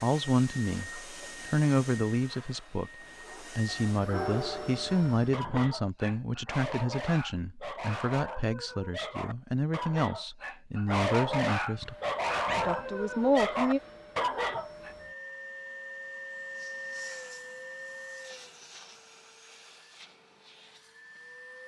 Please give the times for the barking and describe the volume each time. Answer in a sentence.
You can hear the barking from 3.2 to 14.9 s, getting louder.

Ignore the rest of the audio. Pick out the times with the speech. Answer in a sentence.
The speech can be heard from 0.0 to 11.9 s and from 12.6 to 13.8 s.